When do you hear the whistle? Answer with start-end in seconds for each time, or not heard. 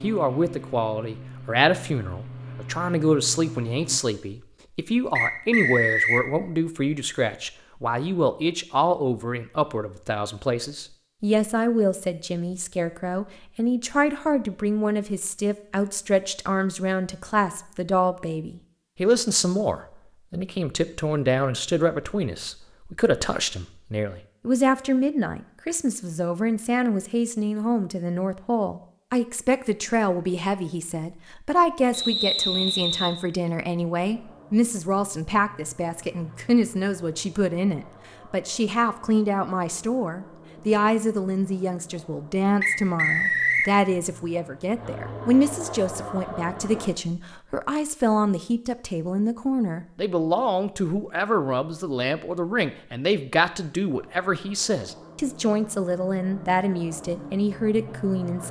5.2-6.2, 31.9-33.2, 42.6-43.7.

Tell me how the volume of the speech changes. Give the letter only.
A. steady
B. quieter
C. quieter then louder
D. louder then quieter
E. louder
A.